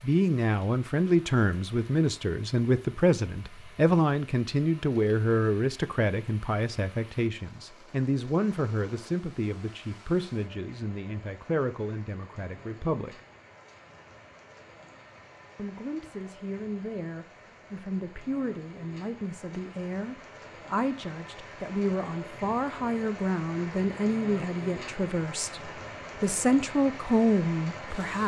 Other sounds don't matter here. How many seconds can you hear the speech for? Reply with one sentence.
The speech can be heard for 26 seconds in total.